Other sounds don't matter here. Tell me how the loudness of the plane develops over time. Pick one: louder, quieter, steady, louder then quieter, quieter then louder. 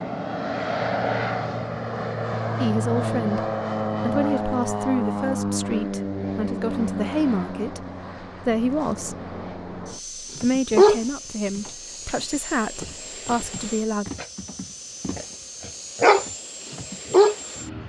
quieter.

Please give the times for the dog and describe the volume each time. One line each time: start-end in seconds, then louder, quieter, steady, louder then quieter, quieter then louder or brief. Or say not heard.
10.4-12.1 brief
12.8-17.4 louder then quieter.